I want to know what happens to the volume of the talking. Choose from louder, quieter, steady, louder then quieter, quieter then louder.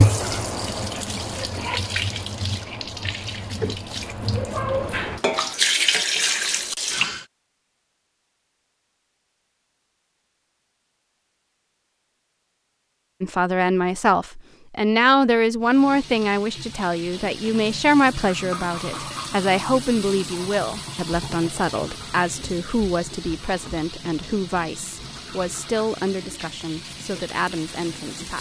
quieter.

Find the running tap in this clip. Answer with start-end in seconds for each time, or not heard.
0.0-7.2, 15.6-28.3.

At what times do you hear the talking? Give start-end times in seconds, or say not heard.
13.2-28.3.